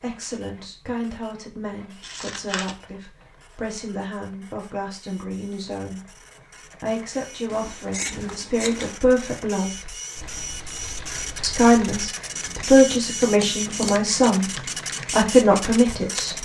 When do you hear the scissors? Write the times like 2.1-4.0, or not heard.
2.0-2.8, 7.5-8.9, 13.4-14.1.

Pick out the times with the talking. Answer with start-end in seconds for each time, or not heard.
0.0-6.2, 6.8-9.9, 11.4-16.3.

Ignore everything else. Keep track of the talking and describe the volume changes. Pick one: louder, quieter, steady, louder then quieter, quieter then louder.
louder.